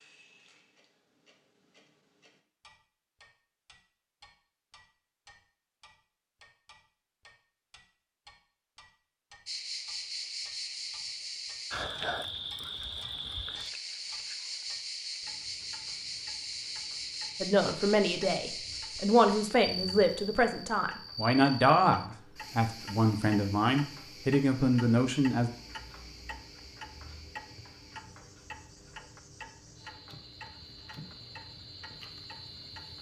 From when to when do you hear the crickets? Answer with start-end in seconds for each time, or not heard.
9.4-32.9.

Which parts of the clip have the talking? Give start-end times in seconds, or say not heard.
17.4-25.5.